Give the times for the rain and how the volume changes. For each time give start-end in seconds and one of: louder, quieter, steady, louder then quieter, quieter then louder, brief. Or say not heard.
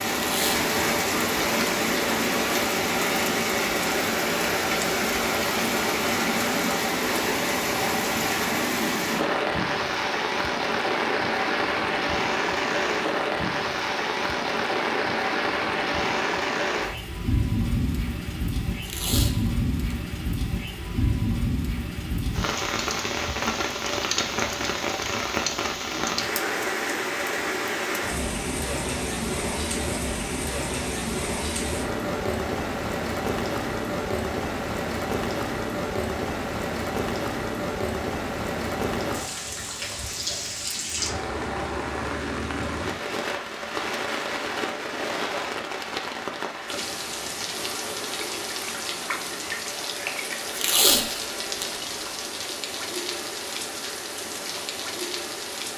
0.0-55.7 quieter.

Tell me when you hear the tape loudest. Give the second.
51 s.